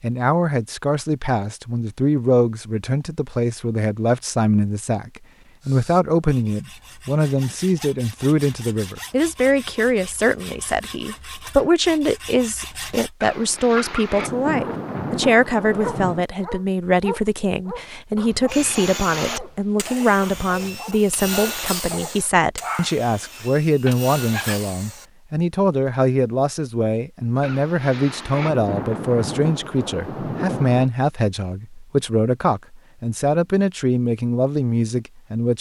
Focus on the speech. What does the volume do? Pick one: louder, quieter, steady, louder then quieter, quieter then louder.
steady.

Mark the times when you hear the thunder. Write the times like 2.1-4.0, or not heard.
13.2-16.2, 27.4-30.9.